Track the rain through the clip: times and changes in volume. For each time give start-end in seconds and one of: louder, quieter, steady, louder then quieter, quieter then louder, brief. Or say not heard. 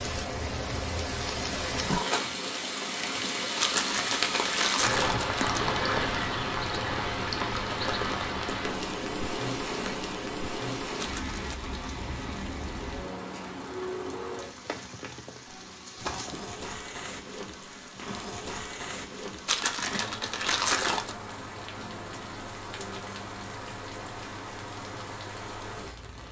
0.0-26.2 quieter.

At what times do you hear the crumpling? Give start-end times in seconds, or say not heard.
3.6-5.6, 10.9-11.6, 19.4-21.1.